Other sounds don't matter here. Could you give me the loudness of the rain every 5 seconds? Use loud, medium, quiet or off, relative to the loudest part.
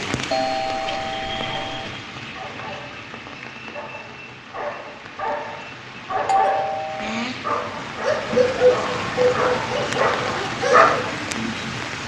medium, loud, loud.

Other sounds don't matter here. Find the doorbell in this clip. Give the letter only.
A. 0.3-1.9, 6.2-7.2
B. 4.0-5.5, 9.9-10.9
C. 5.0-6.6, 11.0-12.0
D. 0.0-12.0
A.